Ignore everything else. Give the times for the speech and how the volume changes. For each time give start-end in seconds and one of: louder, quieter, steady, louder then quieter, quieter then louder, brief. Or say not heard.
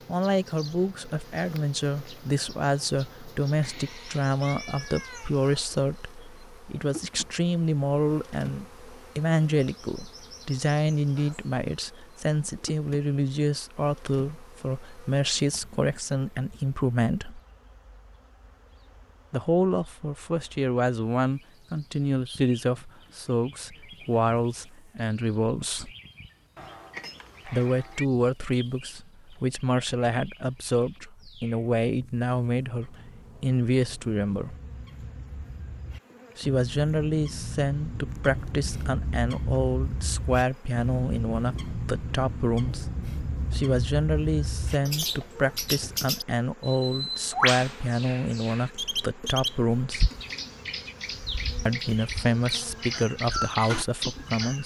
0.1-17.4 steady
19.3-25.9 steady
27.4-34.5 steady
36.4-42.9 steady
43.5-50.1 steady
51.6-54.6 brief.